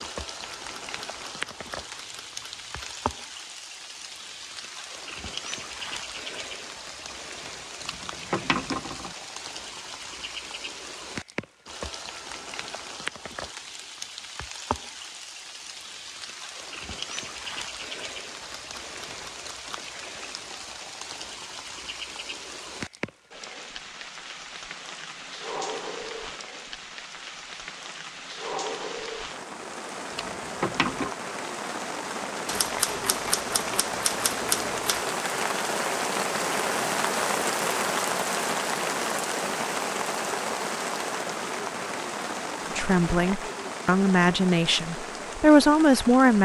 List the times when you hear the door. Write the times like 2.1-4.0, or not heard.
not heard.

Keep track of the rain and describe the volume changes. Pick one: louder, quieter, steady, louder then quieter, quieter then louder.
louder.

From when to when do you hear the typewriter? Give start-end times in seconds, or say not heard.
0.4-3.1, 18.4-19.9, 32.5-35.0.